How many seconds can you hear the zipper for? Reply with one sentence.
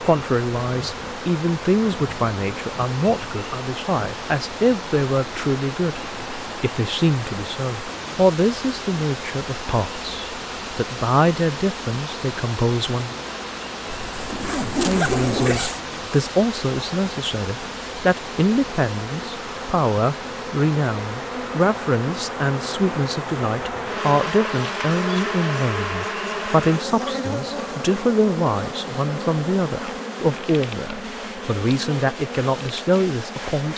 You can hear the zipper for 2 seconds altogether.